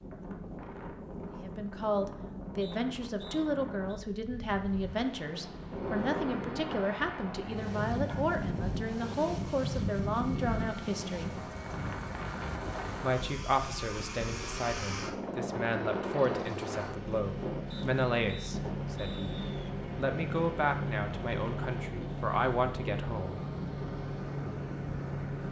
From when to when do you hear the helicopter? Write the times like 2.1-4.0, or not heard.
5.7-25.4.